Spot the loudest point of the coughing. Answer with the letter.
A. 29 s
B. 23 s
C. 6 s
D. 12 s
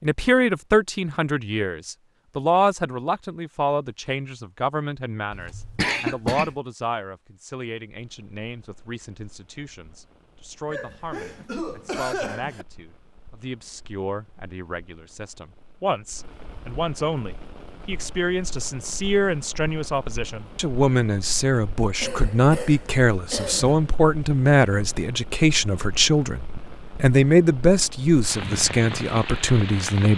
C.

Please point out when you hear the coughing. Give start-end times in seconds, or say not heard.
5.3-6.5, 10.7-12.7, 22.0-23.8.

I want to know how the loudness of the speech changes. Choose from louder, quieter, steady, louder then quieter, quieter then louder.
quieter then louder.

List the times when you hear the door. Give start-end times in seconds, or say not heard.
not heard.